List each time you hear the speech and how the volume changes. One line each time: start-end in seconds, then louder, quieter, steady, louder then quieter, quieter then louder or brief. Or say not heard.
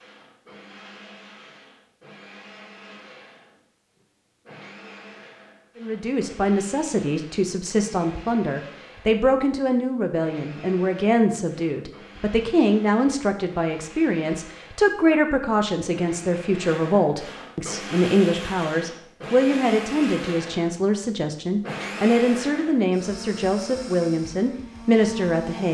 5.8-25.6 steady.